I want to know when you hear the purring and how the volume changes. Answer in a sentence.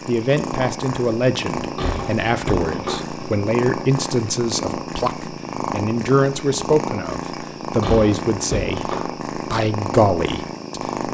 The purring can be heard from 0.0 to 11.0 s, at a steady volume.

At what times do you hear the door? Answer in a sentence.
You can hear the door from 1.6 to 3.3 s and from 7.6 to 9.1 s.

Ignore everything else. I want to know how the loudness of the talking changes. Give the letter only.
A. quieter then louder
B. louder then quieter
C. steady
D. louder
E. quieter
C.